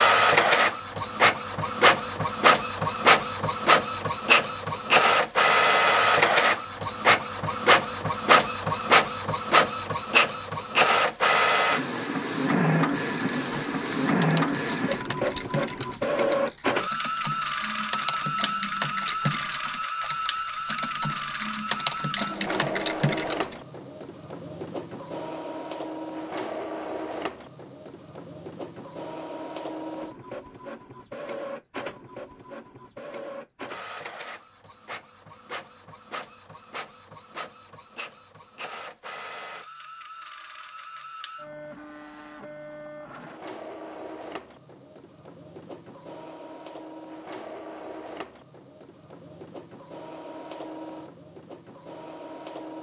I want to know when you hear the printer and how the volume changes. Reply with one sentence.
The printer can be heard from 0.0 to 52.7 s, getting quieter.